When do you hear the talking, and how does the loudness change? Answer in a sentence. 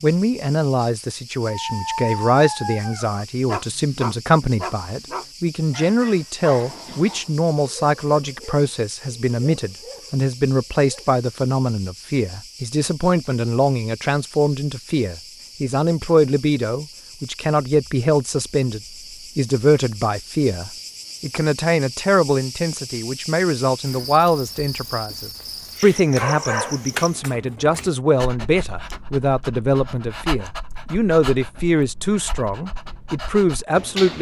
You can hear the talking from 0.0 to 34.1 s, at a steady volume.